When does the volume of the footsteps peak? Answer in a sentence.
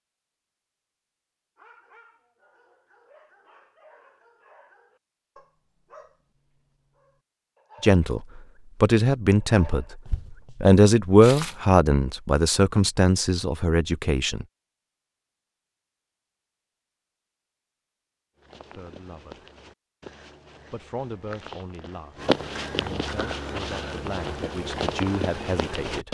The loudest moment of the footsteps is at 22 seconds.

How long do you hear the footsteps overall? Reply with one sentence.
You can hear the footsteps for 9 seconds altogether.